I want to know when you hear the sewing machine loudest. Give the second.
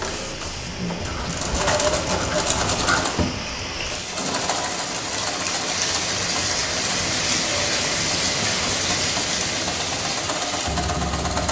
2 s.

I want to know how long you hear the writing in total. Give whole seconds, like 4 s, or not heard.
2 s.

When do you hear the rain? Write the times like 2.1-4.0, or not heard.
0.0-11.4.